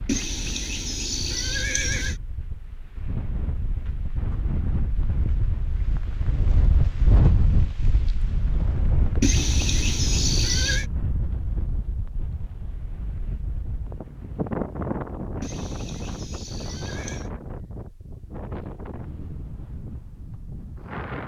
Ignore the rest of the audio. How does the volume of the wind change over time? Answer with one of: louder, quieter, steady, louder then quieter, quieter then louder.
louder then quieter.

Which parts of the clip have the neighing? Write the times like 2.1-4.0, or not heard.
0.1-2.1, 9.2-10.8, 15.4-17.3.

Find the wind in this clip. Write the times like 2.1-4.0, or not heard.
0.0-21.2.